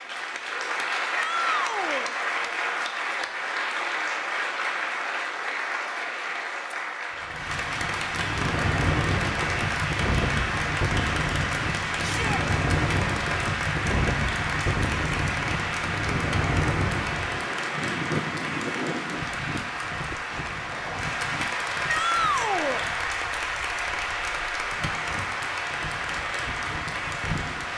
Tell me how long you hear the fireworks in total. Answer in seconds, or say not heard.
not heard.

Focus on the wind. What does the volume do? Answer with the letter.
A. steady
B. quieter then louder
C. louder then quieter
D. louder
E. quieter
E.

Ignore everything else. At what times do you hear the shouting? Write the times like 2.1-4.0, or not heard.
1.1-2.1, 12.0-12.4, 21.9-22.9.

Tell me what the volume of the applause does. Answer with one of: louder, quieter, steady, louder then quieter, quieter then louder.
steady.